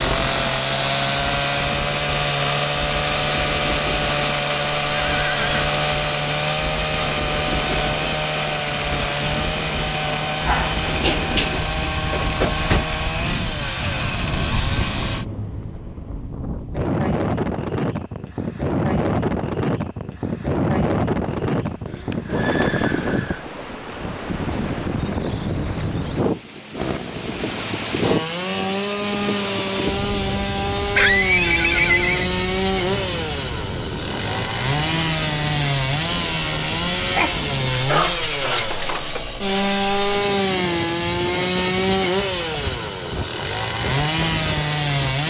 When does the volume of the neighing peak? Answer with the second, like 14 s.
31 s.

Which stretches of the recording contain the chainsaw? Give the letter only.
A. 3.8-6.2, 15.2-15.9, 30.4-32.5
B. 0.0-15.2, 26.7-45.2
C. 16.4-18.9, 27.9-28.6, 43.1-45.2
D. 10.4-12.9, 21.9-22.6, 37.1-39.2
B.